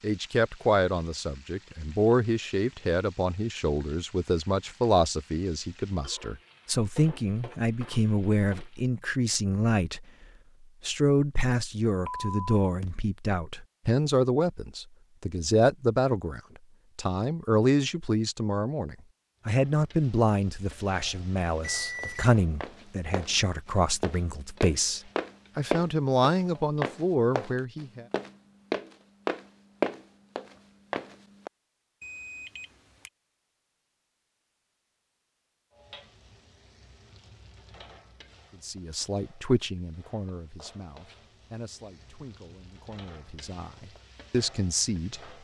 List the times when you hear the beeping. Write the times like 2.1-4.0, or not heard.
12.1-12.9, 21.8-22.3, 32.0-33.1.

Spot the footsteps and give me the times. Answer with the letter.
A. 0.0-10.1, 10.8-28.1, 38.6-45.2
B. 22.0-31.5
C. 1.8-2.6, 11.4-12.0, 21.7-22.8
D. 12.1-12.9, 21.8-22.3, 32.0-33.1
B.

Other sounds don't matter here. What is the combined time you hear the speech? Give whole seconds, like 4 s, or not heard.
34 s.